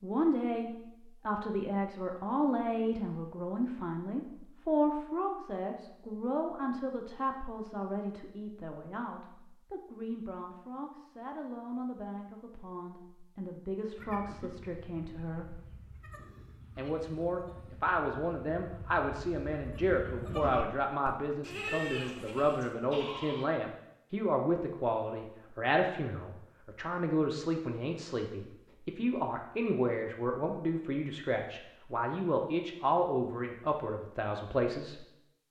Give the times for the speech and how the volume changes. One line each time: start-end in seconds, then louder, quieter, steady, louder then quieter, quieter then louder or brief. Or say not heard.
0.0-15.6 quieter
16.8-35.0 steady.